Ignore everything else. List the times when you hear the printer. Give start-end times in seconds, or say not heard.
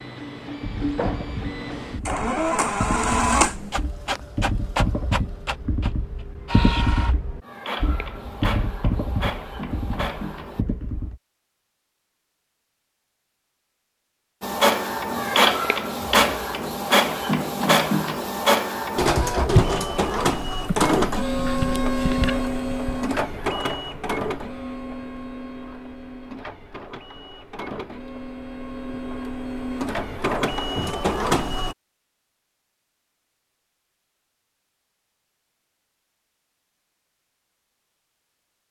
0.0-10.7, 14.4-31.8.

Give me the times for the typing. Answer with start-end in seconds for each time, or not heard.
0.6-11.2.